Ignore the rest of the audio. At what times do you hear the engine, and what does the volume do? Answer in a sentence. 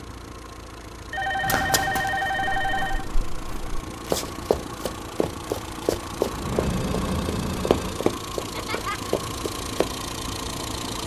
You can hear the engine from 0.0 to 11.0 s, getting louder.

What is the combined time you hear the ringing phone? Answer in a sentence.
You can hear the ringing phone for 4 seconds altogether.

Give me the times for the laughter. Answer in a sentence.
The laughter can be heard from 8.3 to 9.2 s.